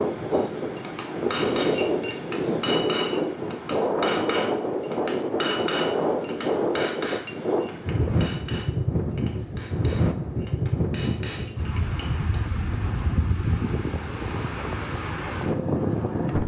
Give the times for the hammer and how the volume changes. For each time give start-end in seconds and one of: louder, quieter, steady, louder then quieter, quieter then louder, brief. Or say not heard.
0.3-12.2 quieter.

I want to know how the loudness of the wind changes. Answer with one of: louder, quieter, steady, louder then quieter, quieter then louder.
steady.